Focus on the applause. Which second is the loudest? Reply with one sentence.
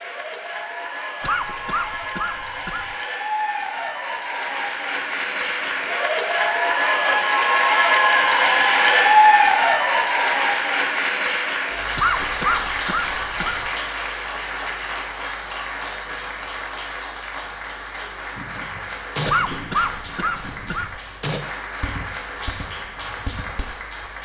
The volume of the applause peaks at 9 seconds.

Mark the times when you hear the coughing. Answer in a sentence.
You can hear the coughing from 1.2 to 3.0 s, from 11.9 to 13.7 s and from 19.2 to 21.0 s.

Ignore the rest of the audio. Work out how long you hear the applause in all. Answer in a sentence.
The applause can be heard for 24 seconds in total.